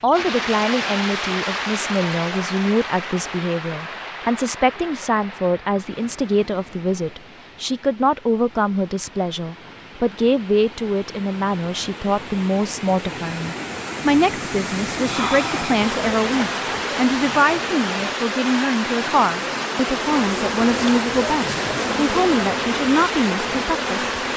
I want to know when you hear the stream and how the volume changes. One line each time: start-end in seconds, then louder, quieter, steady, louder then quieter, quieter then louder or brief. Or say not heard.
0.0-24.3 quieter then louder.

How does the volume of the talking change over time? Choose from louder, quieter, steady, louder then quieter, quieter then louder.
steady.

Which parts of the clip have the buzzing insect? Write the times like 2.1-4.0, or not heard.
15.8-18.1, 19.9-24.3.